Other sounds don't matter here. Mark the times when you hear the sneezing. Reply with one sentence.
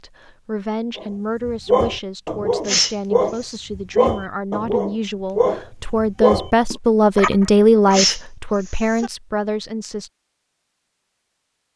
The sneezing can be heard from 2.6 to 3.5 s and from 7.9 to 9.1 s.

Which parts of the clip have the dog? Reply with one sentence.
The dog can be heard from 0.9 to 8.0 s.